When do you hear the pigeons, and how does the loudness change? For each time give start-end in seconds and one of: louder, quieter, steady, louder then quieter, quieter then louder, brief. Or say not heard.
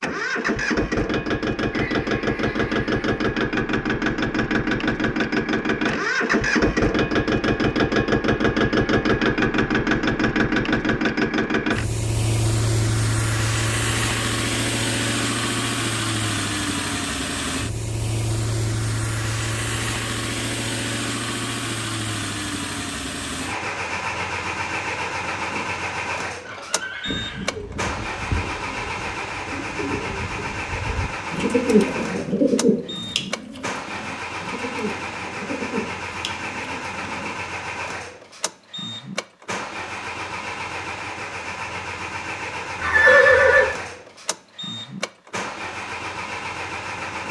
27.1-37.2 louder then quieter.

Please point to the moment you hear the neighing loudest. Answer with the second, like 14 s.
43 s.